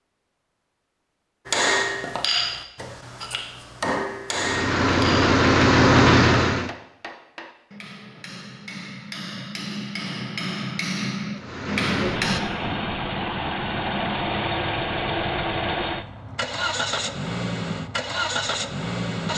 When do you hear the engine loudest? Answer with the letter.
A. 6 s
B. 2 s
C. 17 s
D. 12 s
A.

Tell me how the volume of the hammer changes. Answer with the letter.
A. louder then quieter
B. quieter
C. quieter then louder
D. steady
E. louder
C.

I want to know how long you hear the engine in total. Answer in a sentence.
You can hear the engine for 10 seconds altogether.